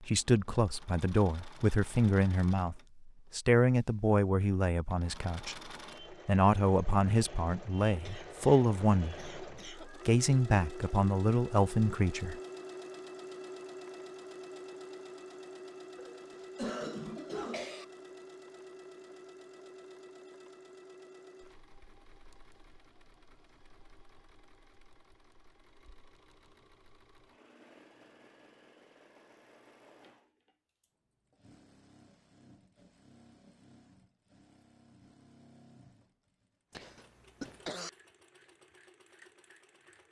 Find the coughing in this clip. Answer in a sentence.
The coughing can be heard from 8.1 to 9.9 s, from 15.9 to 17.9 s and from 36.7 to 37.9 s.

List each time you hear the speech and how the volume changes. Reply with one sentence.
You can hear the speech from 0.0 to 12.3 s, at a steady volume.